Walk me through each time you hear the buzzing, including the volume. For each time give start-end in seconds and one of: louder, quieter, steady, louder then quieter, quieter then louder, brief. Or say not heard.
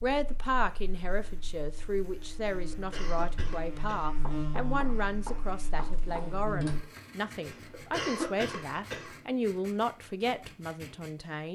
0.0-6.9 louder then quieter.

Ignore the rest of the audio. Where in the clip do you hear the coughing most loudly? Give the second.
8 s.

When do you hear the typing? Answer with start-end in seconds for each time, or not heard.
not heard.